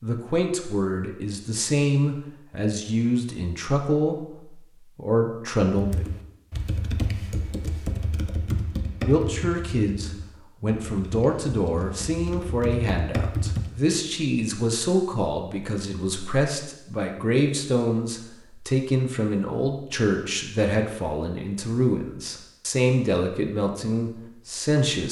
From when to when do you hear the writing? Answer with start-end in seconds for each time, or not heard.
not heard.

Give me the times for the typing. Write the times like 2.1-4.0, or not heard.
5.7-13.8.